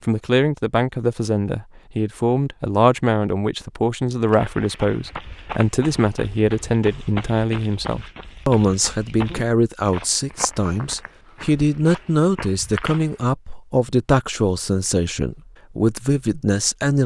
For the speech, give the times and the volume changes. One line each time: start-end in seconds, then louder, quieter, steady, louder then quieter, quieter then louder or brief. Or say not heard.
0.1-17.0 steady.